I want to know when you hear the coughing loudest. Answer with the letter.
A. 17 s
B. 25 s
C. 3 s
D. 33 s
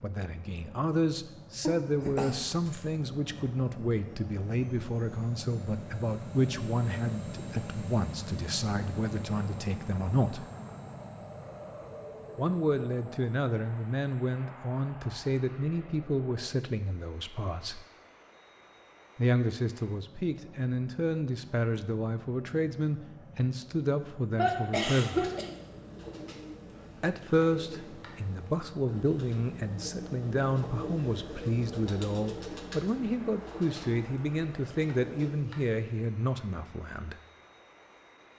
B.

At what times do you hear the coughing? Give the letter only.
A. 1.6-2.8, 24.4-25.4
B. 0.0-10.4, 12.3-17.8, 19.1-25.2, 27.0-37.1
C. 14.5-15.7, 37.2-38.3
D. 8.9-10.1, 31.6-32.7
A.